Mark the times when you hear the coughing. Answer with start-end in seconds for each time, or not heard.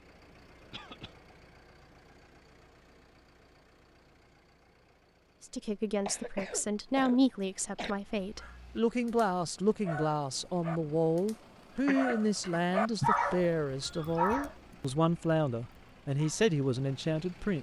0.7-1.1, 6.0-8.0, 11.8-13.1.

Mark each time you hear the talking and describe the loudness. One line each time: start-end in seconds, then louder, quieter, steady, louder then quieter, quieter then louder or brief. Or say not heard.
5.4-17.5 steady.